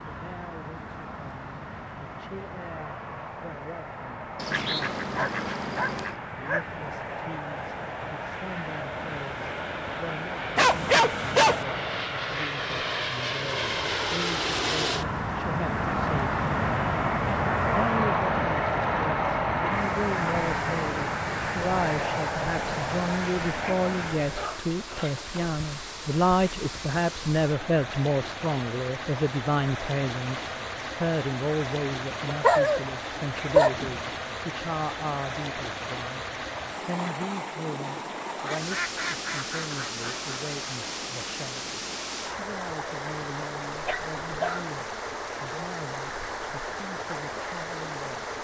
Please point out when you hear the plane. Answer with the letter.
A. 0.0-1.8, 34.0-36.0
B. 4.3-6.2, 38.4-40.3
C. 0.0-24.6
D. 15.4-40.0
C.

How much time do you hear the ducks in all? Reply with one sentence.
The ducks can be heard for 4 seconds in total.